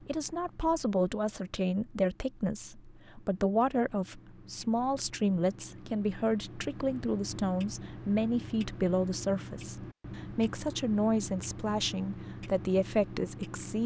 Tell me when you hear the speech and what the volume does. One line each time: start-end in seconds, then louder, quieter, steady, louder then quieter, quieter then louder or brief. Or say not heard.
0.0-13.8 steady.